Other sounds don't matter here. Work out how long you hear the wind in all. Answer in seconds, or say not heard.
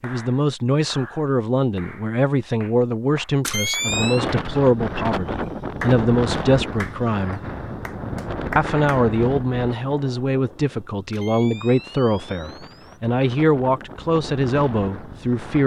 12 s.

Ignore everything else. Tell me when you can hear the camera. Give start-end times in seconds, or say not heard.
3.4-4.3, 11.1-12.9.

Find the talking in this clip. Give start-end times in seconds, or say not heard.
0.0-7.4, 8.6-15.6.